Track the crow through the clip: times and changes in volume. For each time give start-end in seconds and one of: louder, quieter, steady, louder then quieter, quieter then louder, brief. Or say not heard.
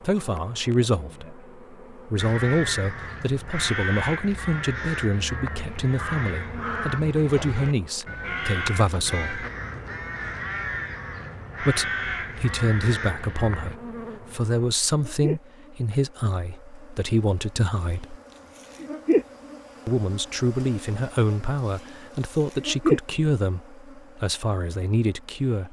2.1-13.8 steady.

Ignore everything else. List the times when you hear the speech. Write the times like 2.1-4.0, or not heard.
0.0-9.4, 11.6-18.1, 19.9-25.6.